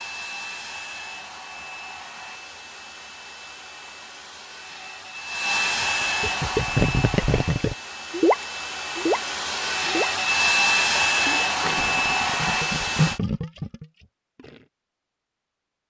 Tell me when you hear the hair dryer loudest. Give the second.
11 s.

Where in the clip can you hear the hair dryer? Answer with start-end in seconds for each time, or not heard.
0.0-13.2.